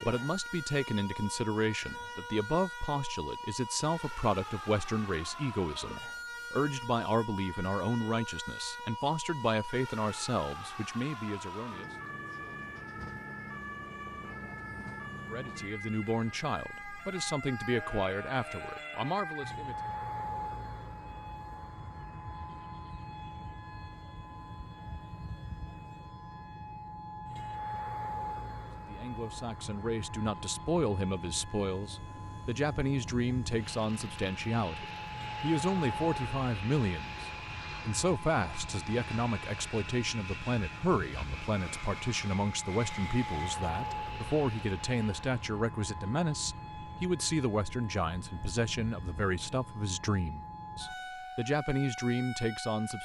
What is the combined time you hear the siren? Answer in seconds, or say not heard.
53 s.